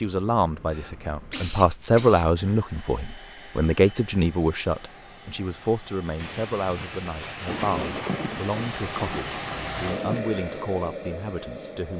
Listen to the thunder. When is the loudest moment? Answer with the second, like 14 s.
8 s.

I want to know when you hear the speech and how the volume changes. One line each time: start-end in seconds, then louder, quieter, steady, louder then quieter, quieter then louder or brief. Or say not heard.
0.0-11.9 quieter.